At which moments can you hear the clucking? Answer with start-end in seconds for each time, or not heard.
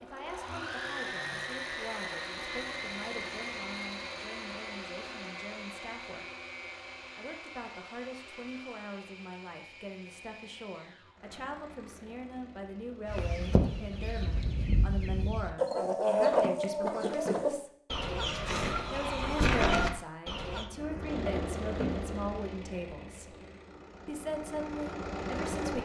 13.1-20.6.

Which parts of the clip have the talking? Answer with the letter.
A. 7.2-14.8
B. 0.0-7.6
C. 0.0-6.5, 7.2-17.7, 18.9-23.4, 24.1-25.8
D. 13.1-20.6
C.